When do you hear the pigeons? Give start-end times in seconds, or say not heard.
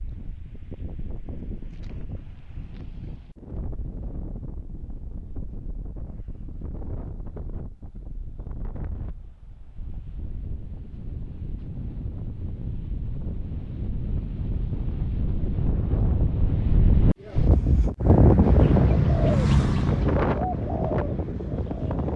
18.4-22.1.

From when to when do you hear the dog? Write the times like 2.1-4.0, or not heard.
not heard.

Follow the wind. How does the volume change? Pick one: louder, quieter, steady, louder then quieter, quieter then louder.
louder.